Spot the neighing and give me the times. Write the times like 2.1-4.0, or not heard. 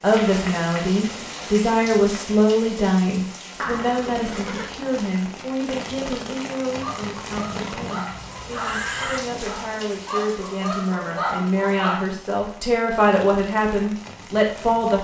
3.6-4.8, 7.5-9.2.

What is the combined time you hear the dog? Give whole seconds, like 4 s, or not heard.
5 s.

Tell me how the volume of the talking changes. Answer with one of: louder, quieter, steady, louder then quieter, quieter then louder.
quieter then louder.